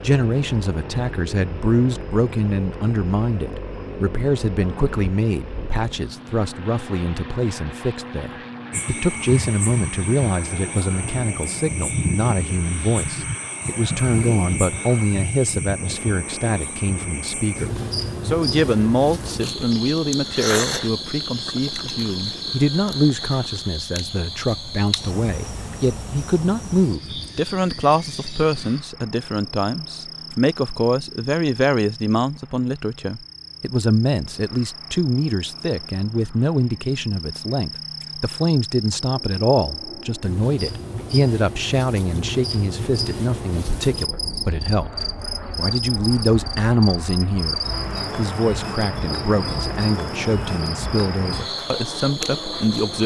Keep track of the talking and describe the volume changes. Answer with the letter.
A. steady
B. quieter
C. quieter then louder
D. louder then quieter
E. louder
A.